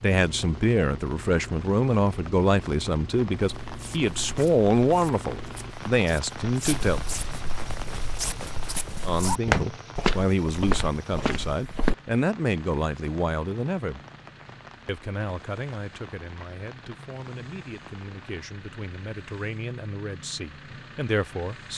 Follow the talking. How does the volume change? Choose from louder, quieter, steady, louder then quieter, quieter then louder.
quieter.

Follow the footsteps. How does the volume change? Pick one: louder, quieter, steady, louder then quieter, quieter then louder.
louder.